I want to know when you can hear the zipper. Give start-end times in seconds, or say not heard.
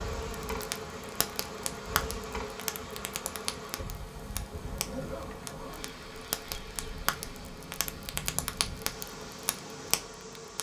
4.4-5.9.